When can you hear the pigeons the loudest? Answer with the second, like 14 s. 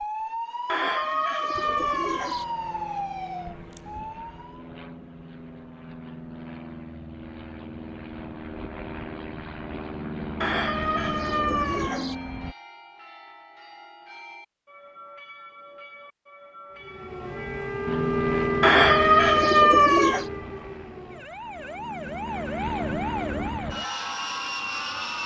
20 s.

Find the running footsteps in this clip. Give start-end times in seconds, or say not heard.
not heard.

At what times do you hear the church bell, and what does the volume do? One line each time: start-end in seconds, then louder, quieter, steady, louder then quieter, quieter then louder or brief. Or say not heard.
12.1-17.7 steady.